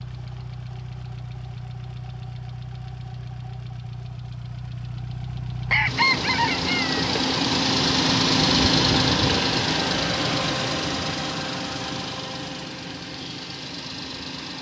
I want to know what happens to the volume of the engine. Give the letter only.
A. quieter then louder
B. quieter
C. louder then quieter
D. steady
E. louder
C.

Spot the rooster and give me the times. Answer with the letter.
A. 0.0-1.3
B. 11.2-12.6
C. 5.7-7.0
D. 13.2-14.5
C.